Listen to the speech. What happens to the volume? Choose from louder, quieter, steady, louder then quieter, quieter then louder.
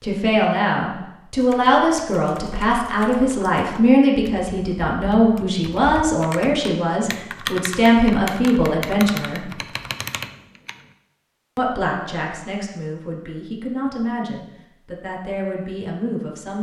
quieter.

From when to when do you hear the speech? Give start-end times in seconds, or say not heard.
0.0-9.6, 11.6-16.5.